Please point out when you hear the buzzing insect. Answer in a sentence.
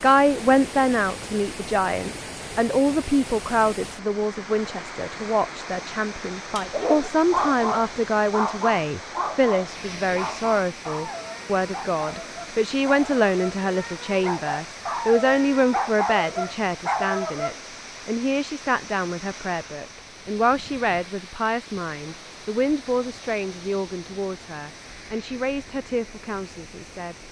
You can't hear the buzzing insect here.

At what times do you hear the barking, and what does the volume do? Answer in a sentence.
The barking can be heard from 6.5 to 17.6 s, getting quieter then louder.